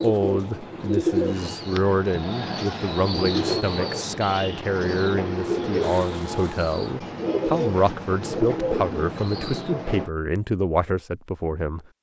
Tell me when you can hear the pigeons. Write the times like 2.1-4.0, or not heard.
0.0-10.1.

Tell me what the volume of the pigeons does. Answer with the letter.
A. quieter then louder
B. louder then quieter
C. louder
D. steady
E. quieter
D.